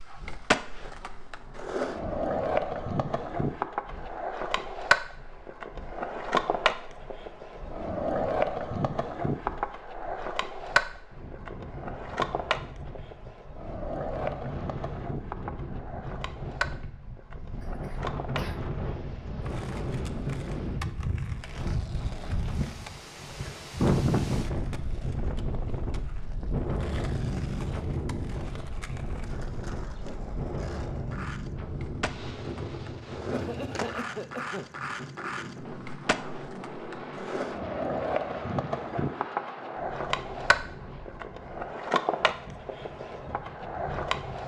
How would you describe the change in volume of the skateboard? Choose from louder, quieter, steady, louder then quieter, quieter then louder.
quieter then louder.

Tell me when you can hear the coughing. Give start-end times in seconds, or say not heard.
17.6-18.6, 33.3-34.7.